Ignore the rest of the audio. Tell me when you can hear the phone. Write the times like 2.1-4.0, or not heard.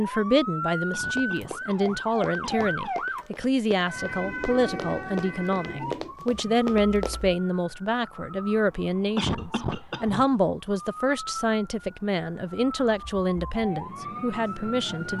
not heard.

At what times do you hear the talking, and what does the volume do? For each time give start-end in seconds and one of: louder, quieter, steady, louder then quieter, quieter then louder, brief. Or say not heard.
0.0-15.1 steady.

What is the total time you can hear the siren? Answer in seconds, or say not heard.
15 s.